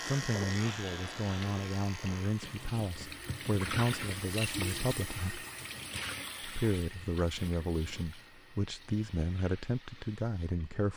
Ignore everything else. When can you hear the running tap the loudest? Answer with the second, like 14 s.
4 s.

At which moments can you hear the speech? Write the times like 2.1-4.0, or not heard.
0.1-5.5, 6.4-10.9.